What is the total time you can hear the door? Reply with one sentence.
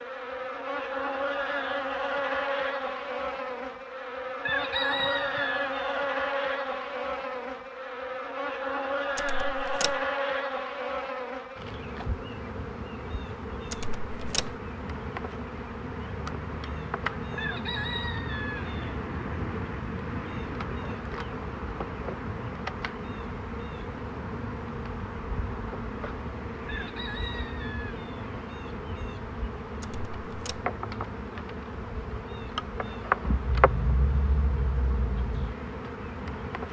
The door can be heard for 3 seconds in total.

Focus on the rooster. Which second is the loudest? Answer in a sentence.
The volume of the rooster peaks at 5 seconds.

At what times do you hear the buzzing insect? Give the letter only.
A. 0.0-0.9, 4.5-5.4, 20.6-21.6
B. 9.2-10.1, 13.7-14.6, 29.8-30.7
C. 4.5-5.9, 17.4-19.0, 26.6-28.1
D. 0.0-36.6
D.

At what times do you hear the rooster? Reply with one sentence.
You can hear the rooster from 4.5 to 5.9 s, from 17.4 to 19.0 s and from 26.6 to 28.1 s.